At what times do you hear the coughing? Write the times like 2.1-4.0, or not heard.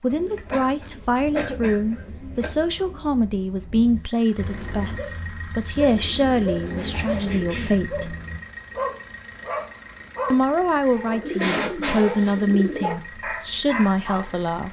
0.5-2.5, 7.2-7.8, 10.8-12.3.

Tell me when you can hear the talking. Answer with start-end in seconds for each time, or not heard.
0.0-8.2, 10.3-14.6.